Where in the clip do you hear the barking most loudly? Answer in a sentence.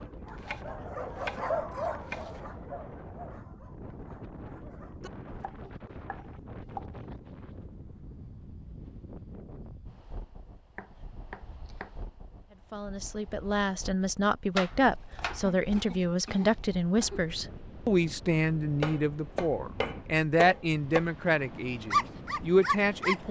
The loudest moment of the barking is at 22 seconds.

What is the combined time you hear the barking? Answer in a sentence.
The barking can be heard for 7 seconds in total.